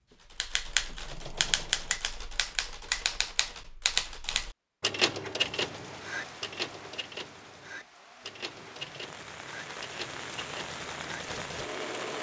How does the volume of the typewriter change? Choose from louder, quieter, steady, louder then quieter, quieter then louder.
quieter.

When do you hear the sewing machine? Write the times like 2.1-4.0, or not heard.
0.0-2.0, 5.3-12.1.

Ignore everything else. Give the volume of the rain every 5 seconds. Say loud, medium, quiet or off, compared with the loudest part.
off, medium, loud.